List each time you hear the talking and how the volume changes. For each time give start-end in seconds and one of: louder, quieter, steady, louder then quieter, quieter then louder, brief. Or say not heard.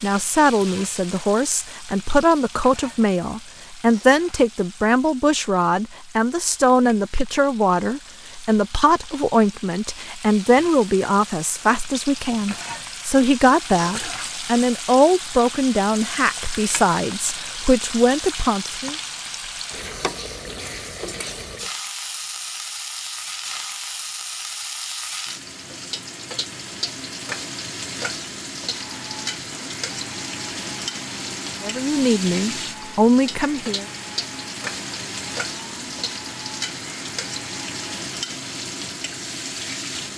0.0-18.9 steady
31.6-33.9 brief.